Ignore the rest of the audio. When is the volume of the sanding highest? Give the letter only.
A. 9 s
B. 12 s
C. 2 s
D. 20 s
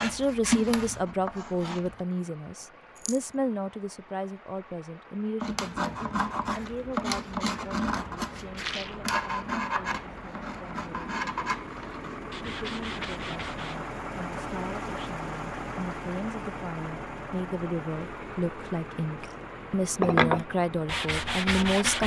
D.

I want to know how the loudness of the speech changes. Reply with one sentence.
The loudness of the speech goes down, then up.